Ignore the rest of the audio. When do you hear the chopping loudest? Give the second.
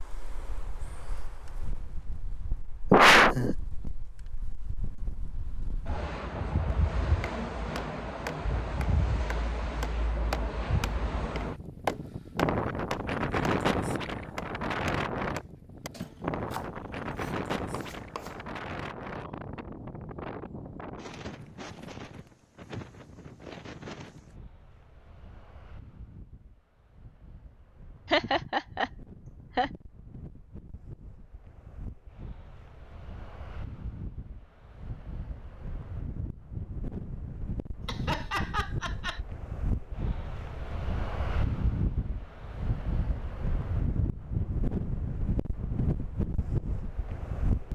12 s.